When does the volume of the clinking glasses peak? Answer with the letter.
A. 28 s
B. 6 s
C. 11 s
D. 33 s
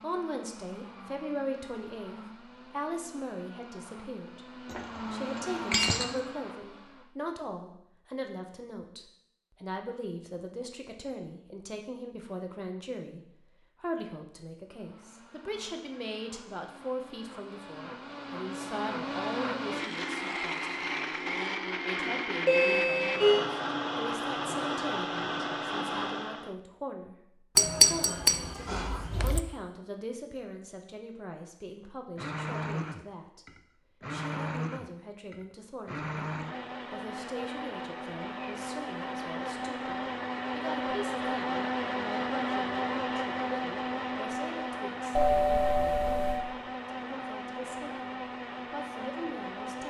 A.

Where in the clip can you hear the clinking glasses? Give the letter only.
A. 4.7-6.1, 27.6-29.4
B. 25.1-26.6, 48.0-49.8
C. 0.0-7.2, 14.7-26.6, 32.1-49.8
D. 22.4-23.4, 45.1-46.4
A.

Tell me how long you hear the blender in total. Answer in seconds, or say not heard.
37 s.